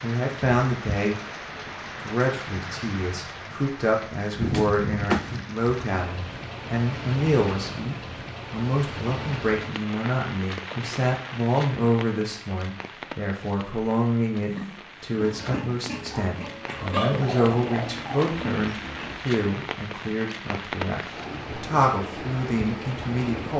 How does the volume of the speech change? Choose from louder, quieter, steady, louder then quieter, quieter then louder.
steady.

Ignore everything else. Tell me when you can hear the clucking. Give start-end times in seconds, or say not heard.
16.6-18.3.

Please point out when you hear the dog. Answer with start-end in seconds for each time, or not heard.
not heard.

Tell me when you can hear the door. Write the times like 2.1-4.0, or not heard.
4.4-5.4.